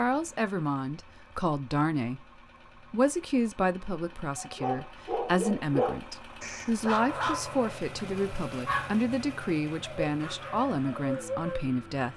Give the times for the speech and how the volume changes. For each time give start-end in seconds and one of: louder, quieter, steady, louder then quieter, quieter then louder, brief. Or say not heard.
0.0-2.2 brief
2.9-12.1 steady.